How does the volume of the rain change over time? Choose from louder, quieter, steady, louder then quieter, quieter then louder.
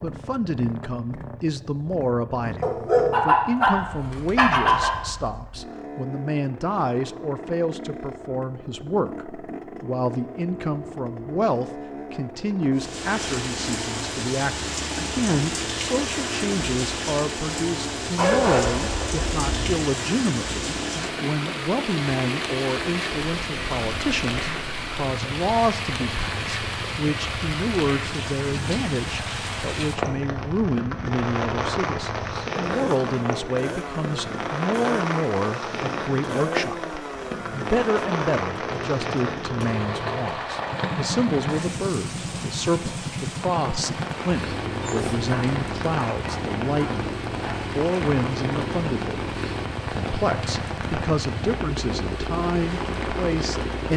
steady.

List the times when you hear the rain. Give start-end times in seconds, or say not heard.
12.8-53.9.